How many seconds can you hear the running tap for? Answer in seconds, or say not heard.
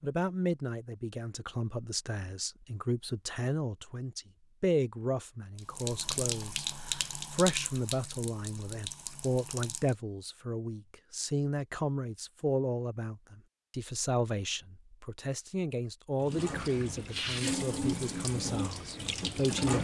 8 s.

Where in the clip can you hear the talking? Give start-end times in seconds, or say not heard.
0.0-19.8.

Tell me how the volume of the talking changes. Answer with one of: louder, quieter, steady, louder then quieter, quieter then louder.
steady.